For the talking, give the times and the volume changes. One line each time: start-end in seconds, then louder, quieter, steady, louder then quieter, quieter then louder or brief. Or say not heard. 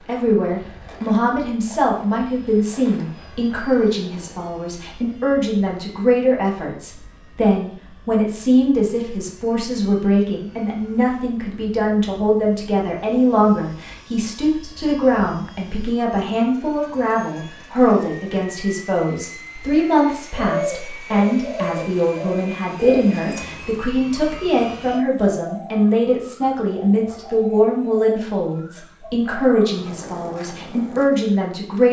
0.1-31.8 steady.